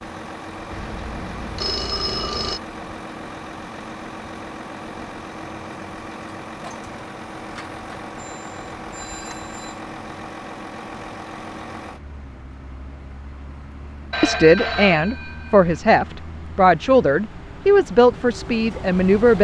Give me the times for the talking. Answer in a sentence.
The talking can be heard from 14.2 to 19.4 s.